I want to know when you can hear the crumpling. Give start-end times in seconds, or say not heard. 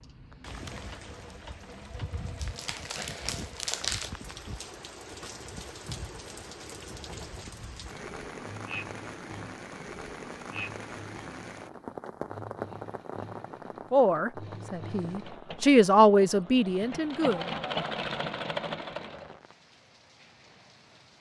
2.4-4.1.